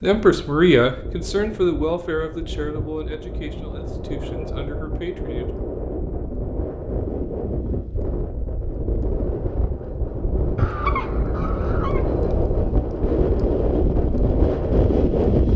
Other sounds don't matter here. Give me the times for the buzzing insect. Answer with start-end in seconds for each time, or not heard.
not heard.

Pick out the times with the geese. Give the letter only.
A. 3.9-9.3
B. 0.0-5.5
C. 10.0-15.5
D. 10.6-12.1
D.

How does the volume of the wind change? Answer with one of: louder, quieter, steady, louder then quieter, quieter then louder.
louder.